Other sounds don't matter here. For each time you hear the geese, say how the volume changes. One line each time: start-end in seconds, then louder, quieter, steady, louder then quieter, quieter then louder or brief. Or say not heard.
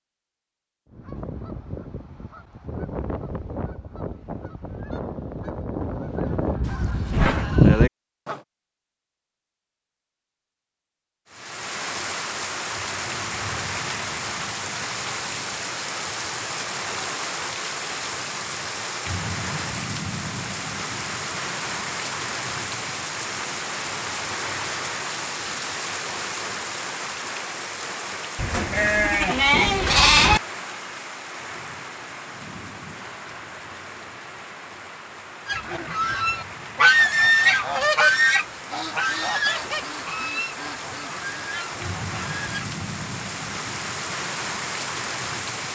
0.9-8.4 louder
35.5-42.7 quieter.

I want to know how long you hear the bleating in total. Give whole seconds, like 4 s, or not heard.
3 s.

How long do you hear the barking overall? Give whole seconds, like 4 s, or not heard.
not heard.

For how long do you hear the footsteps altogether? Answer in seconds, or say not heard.
not heard.